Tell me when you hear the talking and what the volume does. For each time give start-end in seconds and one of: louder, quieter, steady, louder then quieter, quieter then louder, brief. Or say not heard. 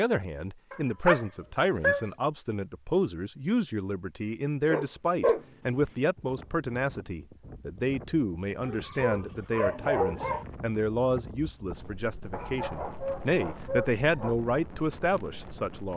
0.0-15.9 steady.